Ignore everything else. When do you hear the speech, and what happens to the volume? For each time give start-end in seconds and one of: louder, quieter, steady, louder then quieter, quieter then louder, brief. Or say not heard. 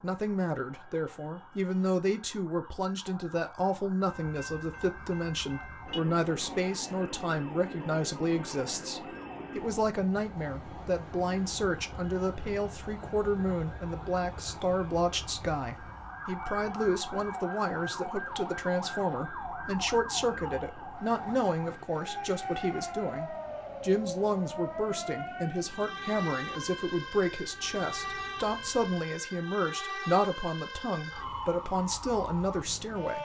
0.0-33.2 steady.